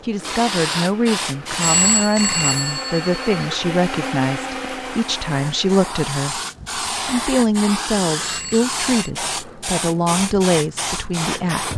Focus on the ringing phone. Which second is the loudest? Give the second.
2 s.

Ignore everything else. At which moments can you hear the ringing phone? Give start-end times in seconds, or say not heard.
1.6-3.4, 8.2-9.1.